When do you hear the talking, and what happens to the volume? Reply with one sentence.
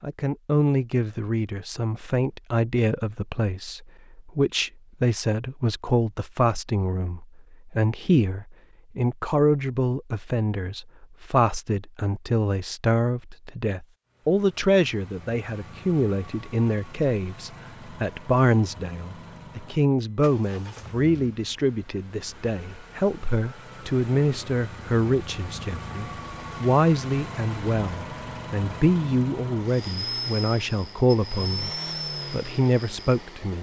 The talking can be heard from 0.0 to 31.7 s, at a steady volume; and briefly from 32.3 to 33.5 s.